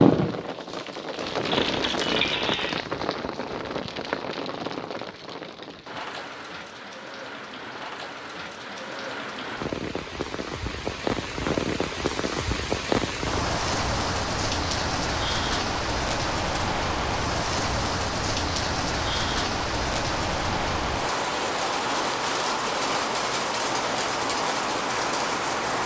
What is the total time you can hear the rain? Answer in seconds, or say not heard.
26 s.